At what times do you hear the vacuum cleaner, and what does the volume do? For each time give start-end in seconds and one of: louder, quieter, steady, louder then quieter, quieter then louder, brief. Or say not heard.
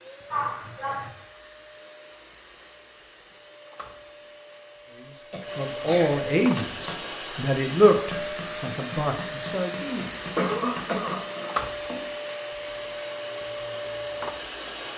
0.0-14.9 louder.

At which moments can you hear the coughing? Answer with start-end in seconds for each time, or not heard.
0.3-1.1, 5.3-6.2, 10.3-11.6.